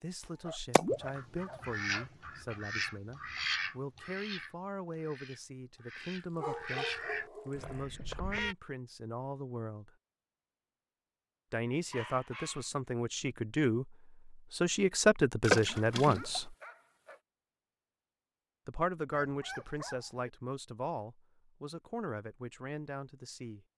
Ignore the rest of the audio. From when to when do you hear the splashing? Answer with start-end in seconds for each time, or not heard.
0.6-1.0, 15.4-16.4.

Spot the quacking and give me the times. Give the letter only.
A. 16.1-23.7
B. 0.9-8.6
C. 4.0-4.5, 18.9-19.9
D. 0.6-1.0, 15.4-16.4
B.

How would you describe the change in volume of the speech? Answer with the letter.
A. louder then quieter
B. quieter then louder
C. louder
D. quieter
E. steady
A.